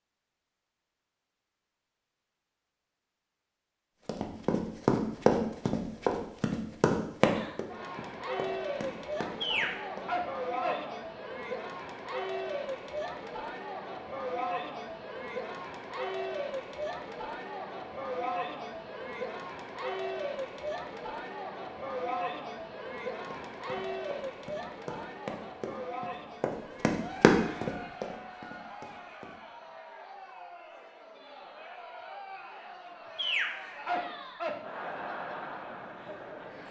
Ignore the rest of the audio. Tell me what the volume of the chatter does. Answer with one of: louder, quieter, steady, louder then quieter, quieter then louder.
quieter.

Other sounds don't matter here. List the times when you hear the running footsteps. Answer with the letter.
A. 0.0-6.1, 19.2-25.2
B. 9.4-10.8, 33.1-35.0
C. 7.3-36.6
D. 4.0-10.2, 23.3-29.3
D.